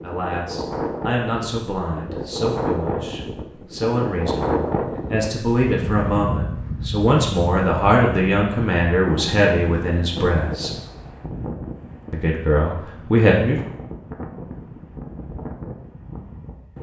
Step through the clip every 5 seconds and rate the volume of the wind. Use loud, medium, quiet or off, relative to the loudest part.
loud, loud, medium, medium.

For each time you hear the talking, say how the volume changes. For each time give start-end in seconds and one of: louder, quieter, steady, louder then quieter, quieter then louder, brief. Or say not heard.
0.0-10.7 louder
12.1-13.6 brief.